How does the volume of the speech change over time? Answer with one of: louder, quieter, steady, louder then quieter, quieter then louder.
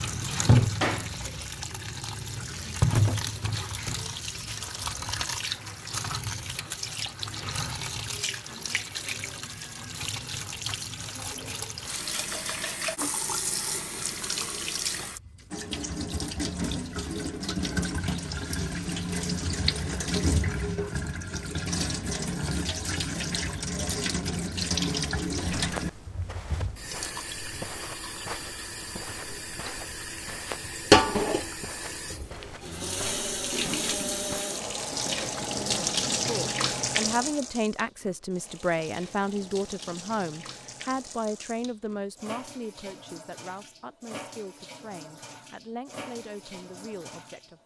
quieter.